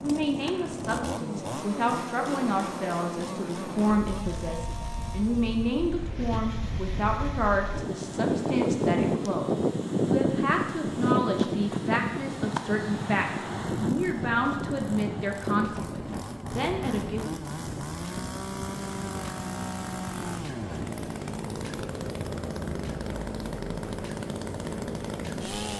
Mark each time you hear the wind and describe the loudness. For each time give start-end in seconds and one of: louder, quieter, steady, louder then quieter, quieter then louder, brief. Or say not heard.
0.0-25.7 louder then quieter.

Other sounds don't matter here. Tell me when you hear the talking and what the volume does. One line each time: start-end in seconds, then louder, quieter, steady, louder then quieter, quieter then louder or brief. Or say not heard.
0.0-17.5 steady.